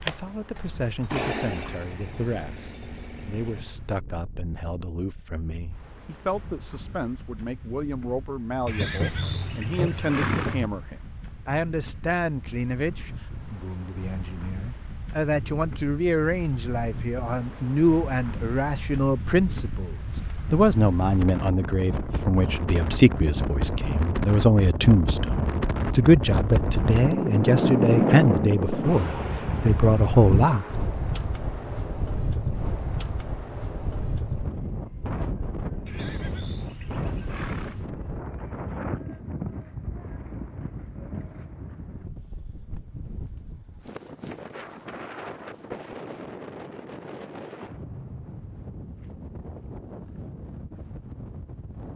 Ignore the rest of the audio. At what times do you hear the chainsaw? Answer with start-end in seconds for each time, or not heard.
0.0-3.8.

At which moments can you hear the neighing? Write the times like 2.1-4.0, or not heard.
8.7-10.7, 35.9-37.9.